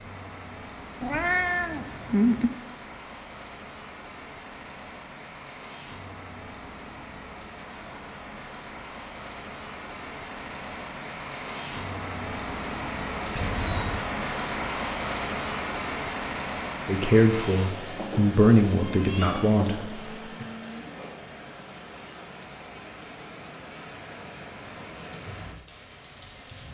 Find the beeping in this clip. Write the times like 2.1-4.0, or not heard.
not heard.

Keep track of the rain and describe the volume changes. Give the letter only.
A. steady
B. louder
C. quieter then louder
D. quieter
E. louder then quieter
E.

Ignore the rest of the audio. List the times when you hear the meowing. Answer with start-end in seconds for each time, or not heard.
1.0-2.5, 13.3-14.1, 17.9-19.9.